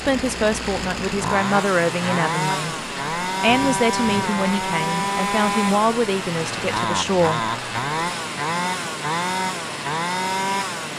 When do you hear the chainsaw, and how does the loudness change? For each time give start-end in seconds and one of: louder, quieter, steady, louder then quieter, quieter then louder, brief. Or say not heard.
0.0-10.9 steady.